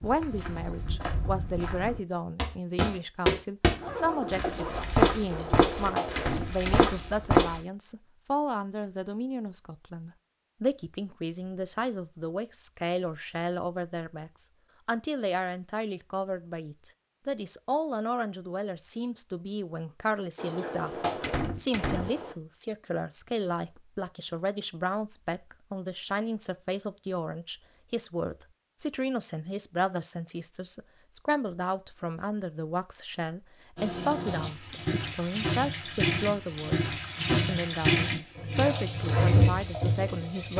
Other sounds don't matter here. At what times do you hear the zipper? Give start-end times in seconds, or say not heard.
3.7-5.0.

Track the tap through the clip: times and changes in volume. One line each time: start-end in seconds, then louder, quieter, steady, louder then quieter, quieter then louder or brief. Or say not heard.
33.8-40.5 louder.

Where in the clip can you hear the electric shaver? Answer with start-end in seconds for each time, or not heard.
not heard.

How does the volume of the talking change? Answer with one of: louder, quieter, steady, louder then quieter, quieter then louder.
steady.